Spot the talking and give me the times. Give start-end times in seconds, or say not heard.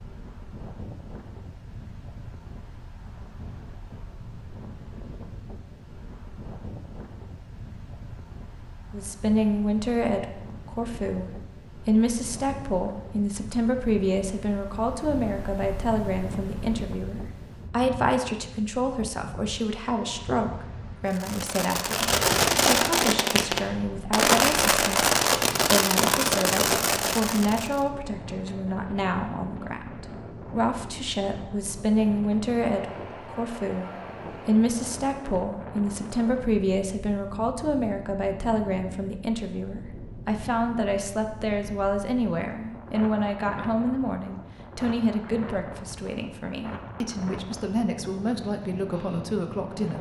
8.9-25.1, 25.7-49.9.